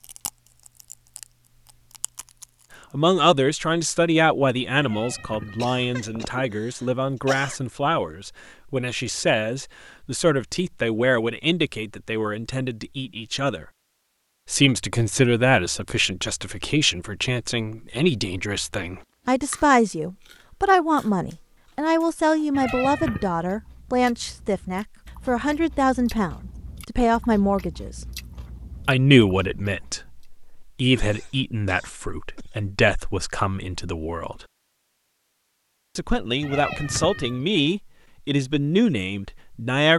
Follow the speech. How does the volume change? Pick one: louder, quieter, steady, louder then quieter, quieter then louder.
steady.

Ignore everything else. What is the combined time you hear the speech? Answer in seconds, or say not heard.
34 s.